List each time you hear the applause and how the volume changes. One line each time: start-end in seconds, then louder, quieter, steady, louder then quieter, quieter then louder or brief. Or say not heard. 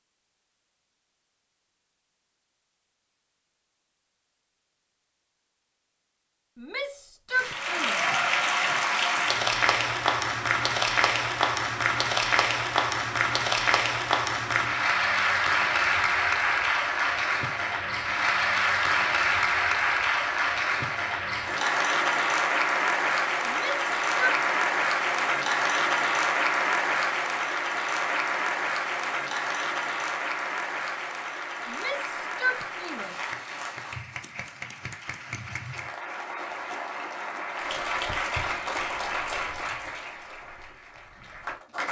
7.3-41.8 quieter.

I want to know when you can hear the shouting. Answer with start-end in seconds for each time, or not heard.
6.5-8.2, 23.4-24.4, 31.6-33.3.